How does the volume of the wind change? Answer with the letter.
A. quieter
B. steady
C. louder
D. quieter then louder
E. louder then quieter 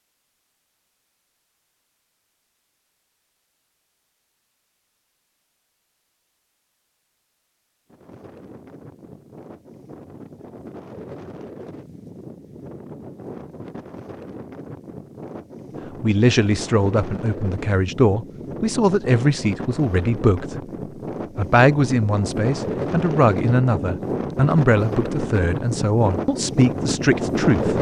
C.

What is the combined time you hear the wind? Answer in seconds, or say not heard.
20 s.